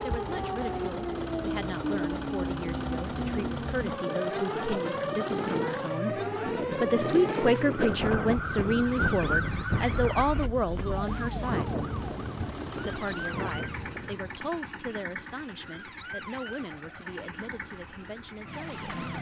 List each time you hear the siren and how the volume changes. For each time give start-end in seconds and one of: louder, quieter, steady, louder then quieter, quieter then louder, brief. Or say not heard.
0.0-19.1 quieter.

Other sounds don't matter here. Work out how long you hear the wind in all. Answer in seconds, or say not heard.
14 s.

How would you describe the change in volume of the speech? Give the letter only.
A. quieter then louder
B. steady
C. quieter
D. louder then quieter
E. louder
D.